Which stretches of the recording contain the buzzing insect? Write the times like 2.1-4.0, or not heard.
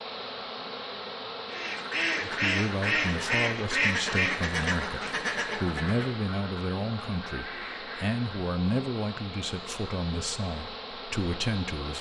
0.0-11.9.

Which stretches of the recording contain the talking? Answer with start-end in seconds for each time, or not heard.
2.2-11.9.